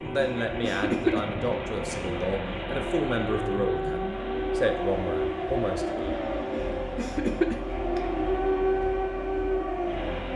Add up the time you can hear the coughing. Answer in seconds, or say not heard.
3 s.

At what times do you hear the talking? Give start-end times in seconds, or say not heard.
0.0-6.2.